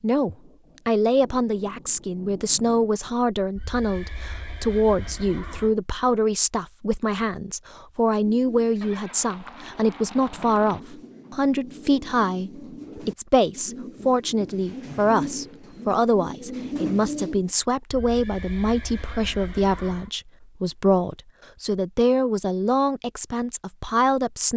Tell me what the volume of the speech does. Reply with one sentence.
The volume of the speech stays about the same.